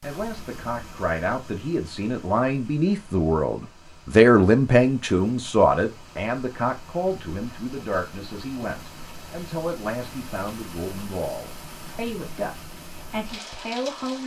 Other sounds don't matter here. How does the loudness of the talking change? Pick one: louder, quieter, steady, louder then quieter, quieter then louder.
louder then quieter.